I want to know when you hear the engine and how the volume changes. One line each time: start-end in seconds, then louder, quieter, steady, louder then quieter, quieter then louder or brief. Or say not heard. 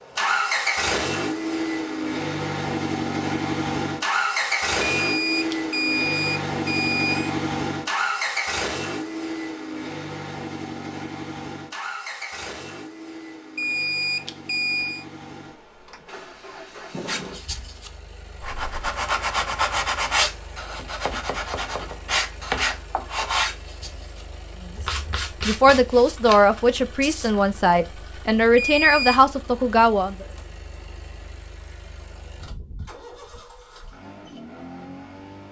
0.0-35.4 quieter.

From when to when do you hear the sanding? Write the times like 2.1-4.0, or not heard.
17.1-27.3.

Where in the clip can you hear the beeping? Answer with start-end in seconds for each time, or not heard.
4.8-7.3, 13.6-15.1, 28.6-29.2.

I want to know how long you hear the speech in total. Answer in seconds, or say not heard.
5 s.